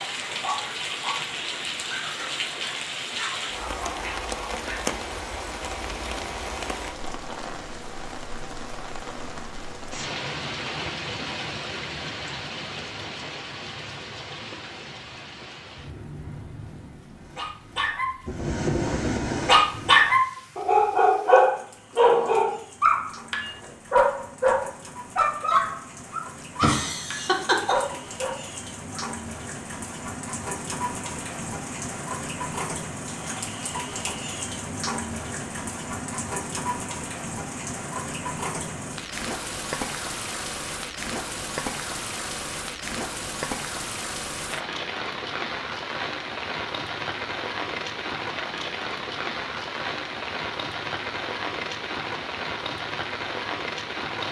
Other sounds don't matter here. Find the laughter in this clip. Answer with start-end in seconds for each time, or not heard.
26.6-27.9.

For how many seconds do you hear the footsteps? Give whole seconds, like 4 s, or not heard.
not heard.